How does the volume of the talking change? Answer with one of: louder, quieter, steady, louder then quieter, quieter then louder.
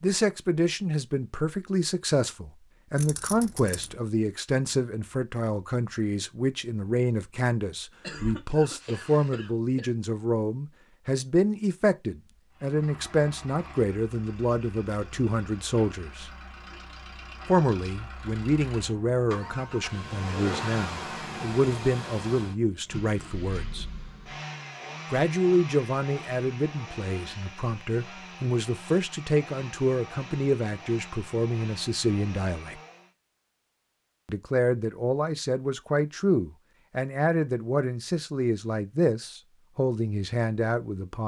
steady.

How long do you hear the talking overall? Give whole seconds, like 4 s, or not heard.
37 s.